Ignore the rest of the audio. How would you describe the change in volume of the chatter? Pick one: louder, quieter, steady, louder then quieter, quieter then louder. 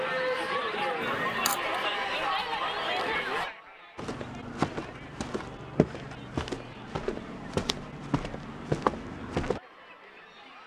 quieter.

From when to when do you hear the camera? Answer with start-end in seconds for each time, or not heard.
1.0-1.6.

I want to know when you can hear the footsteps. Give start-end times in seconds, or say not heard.
4.0-9.6.